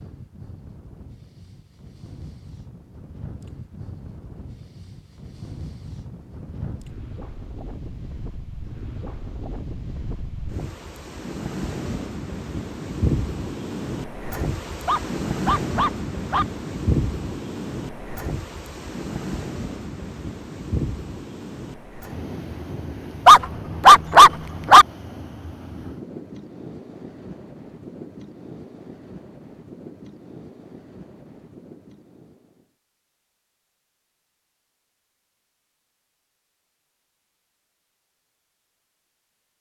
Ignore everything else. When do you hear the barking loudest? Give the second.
24 s.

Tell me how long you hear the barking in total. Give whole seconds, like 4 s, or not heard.
3 s.